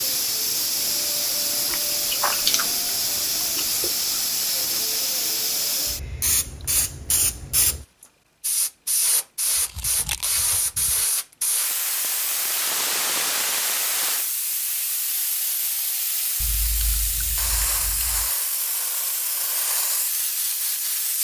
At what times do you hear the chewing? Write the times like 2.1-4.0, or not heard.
1.7-2.6, 3.4-3.9, 9.6-11.0, 16.4-18.3.